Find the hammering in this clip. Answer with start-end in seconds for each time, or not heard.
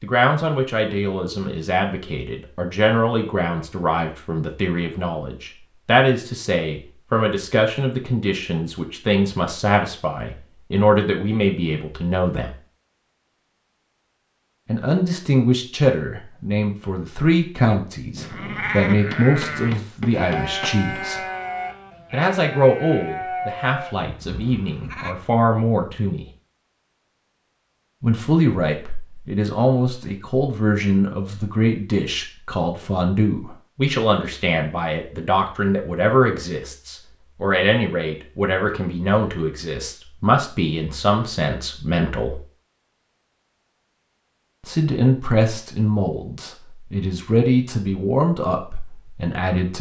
19.1-20.9.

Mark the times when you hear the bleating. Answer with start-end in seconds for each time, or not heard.
17.6-25.1.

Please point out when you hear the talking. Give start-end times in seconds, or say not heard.
0.0-12.6, 14.7-21.2, 22.1-26.2, 28.0-42.4, 44.6-49.7.